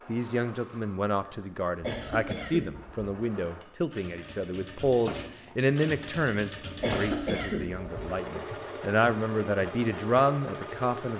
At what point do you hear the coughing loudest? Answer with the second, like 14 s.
7 s.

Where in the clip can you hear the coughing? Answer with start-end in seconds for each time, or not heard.
1.8-3.1, 6.8-7.9.